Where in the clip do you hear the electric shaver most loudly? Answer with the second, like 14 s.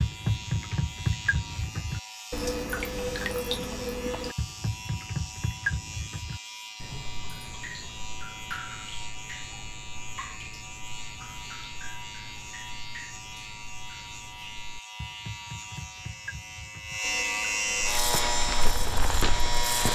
18 s.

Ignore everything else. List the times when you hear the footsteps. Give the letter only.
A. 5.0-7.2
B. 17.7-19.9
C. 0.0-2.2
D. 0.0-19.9
B.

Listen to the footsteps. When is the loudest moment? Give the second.
19 s.